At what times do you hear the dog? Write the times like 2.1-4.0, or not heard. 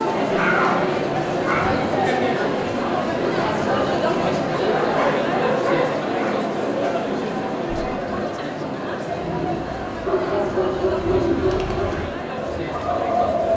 0.3-1.8, 4.5-6.5, 10.0-12.0.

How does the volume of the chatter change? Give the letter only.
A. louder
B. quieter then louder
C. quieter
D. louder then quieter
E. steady
C.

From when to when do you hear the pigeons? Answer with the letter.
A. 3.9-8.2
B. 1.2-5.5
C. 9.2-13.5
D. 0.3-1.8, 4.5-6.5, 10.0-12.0
C.